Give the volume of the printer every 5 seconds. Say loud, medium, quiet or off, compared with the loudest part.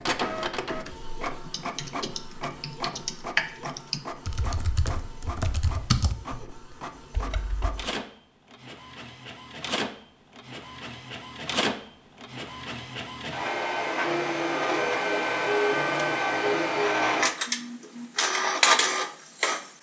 medium, quiet, medium, loud.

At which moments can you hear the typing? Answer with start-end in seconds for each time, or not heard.
1.4-7.8.